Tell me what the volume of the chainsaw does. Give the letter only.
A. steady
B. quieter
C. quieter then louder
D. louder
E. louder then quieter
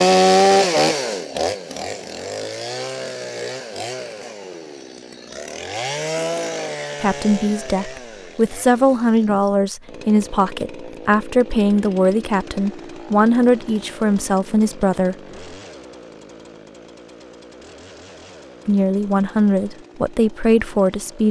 B.